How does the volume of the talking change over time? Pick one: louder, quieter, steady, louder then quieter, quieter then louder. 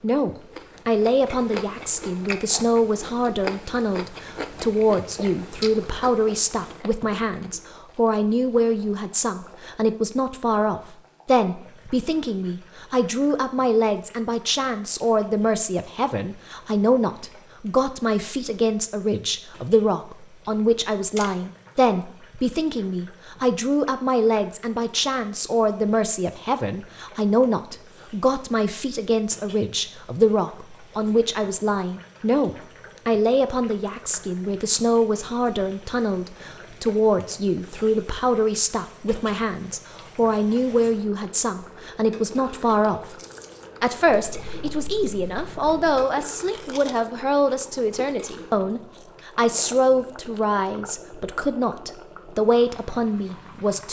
steady.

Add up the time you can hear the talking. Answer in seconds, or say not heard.
53 s.